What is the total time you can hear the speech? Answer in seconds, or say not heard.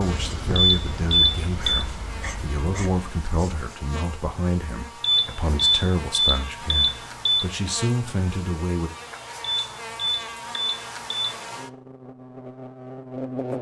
9 s.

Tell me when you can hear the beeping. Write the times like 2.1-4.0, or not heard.
0.6-1.9, 5.0-7.5, 9.4-11.3.